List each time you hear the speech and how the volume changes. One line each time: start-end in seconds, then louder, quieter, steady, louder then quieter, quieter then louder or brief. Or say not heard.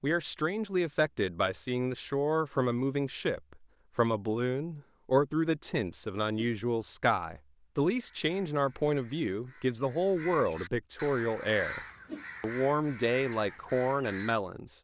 0.0-11.8 steady
12.4-14.7 brief.